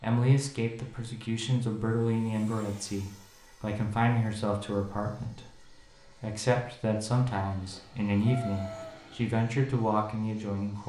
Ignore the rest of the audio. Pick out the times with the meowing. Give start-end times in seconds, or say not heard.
8.2-9.0.